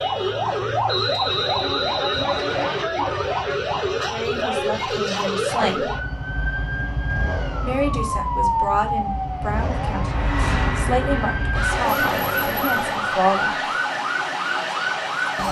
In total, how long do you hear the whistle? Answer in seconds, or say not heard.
2 s.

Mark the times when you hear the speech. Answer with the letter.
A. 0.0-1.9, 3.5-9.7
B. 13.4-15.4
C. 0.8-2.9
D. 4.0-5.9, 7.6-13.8
D.